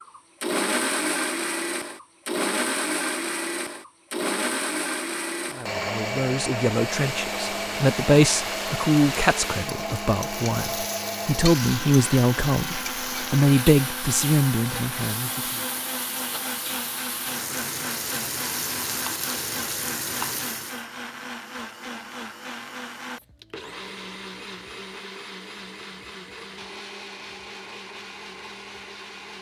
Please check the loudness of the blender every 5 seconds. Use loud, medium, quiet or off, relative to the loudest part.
loud, loud, medium, medium, medium, quiet.